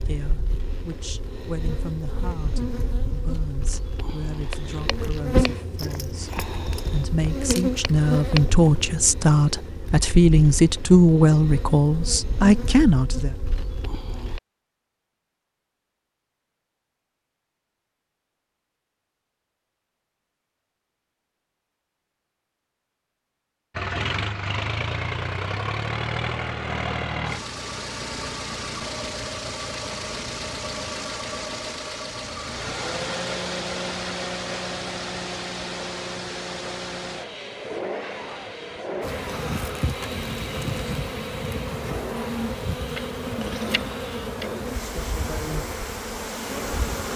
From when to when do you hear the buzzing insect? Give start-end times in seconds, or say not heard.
0.0-14.4, 39.0-47.1.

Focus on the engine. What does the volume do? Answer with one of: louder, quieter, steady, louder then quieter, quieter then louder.
quieter.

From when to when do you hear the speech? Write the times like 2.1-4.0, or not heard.
0.0-13.3.